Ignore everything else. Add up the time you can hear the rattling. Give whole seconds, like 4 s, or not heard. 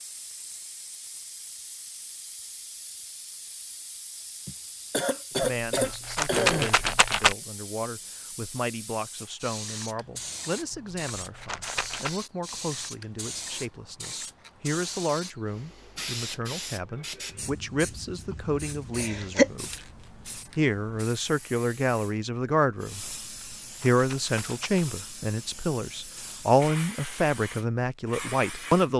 5 s.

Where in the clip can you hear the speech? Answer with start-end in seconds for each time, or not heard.
5.4-19.9, 20.6-23.1, 23.8-28.9.